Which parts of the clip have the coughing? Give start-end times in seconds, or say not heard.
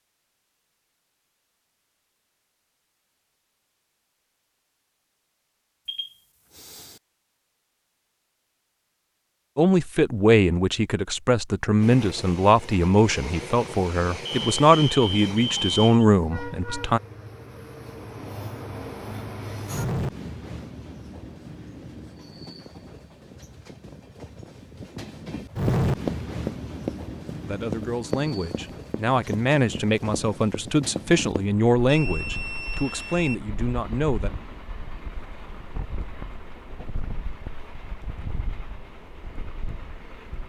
not heard.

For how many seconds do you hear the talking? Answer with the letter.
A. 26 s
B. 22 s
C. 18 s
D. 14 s
D.